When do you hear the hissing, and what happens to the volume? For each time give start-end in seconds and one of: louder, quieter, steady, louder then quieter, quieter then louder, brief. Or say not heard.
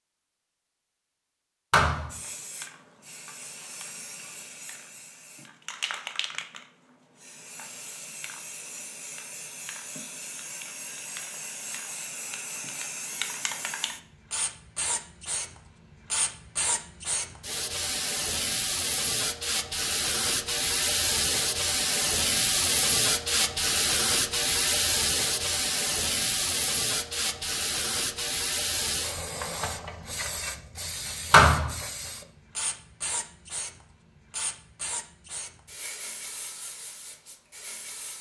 2.1-38.1 louder then quieter.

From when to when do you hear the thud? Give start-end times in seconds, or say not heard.
1.7-2.1, 31.3-31.8.